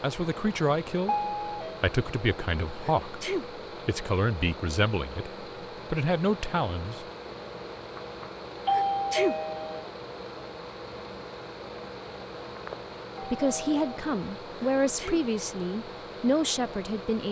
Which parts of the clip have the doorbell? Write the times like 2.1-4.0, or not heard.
1.1-1.8, 8.0-9.8, 12.6-13.9.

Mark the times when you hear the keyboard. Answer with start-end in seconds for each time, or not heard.
not heard.